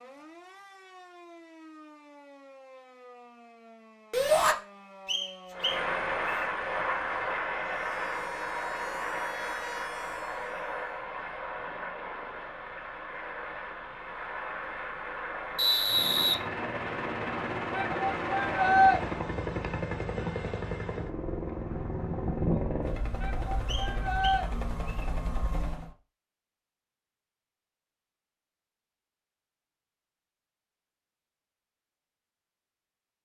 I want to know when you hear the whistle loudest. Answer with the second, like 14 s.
16 s.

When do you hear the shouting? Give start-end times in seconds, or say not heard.
4.1-4.5, 17.7-19.0, 23.2-24.4.